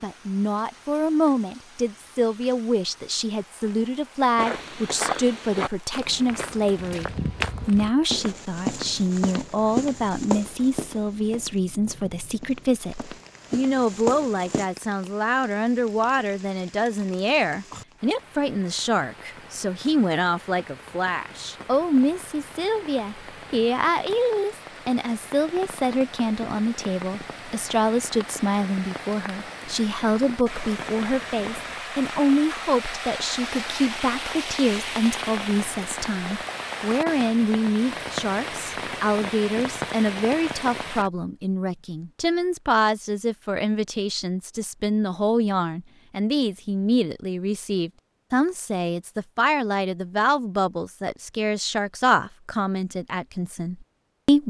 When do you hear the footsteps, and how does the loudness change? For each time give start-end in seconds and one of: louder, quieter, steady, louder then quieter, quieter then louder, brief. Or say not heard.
4.3-14.7 quieter then louder.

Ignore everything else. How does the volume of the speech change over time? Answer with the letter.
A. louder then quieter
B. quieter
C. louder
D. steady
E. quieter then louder
D.